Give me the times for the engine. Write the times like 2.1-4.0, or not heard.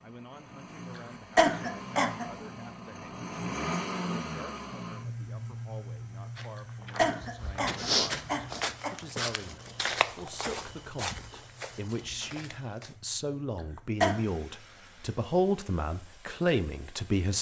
0.0-17.3.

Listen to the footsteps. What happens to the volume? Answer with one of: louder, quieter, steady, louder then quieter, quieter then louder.
louder then quieter.